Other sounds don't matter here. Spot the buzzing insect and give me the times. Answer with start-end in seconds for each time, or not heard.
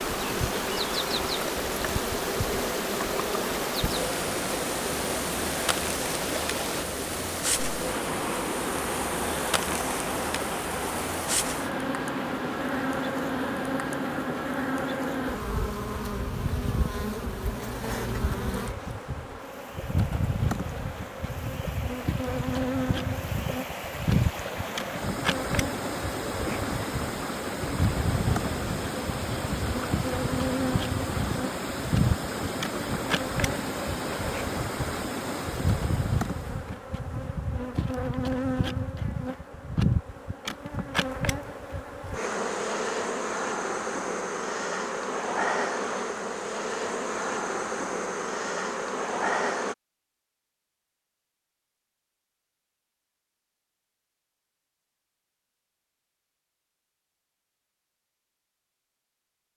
0.0-49.8.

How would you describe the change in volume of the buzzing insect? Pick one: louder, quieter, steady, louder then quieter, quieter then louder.
steady.